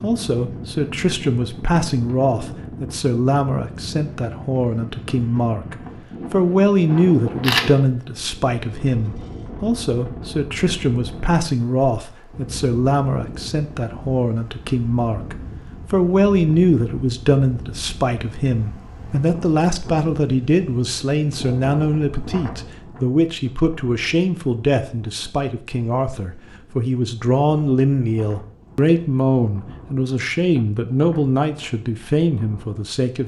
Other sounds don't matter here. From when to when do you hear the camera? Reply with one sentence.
You can hear the camera from 7.4 to 7.9 s.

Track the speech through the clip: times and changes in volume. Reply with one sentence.
The speech can be heard from 0.0 to 33.2 s, at a steady volume.